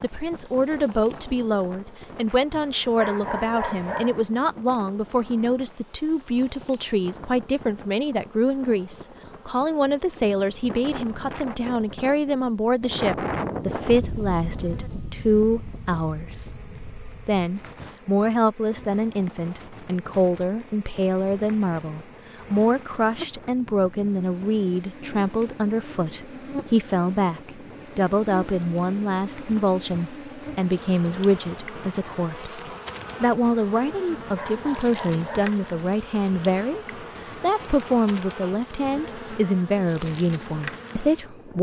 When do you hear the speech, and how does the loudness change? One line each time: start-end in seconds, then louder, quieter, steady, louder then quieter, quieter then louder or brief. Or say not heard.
0.0-41.5 steady.